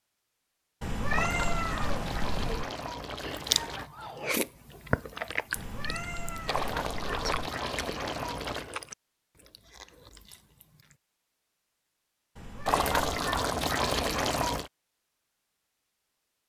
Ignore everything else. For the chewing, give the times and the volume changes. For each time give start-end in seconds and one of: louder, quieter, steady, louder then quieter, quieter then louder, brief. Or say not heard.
3.2-10.9 quieter.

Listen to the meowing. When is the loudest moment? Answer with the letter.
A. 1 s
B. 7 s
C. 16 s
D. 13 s
A.